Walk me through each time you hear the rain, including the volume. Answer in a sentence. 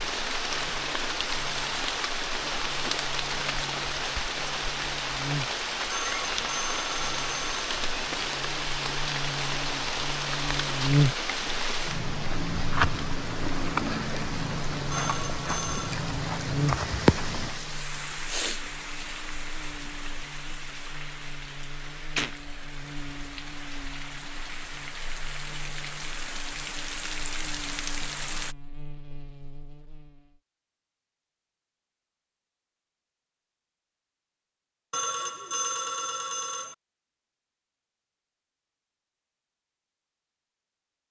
The rain can be heard from 0.0 to 28.6 s, getting quieter.